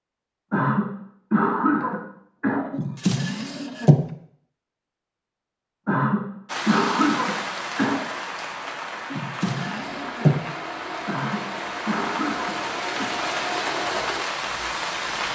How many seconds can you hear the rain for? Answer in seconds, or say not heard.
9 s.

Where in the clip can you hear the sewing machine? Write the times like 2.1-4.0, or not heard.
9.4-15.3.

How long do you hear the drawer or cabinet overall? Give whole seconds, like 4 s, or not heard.
3 s.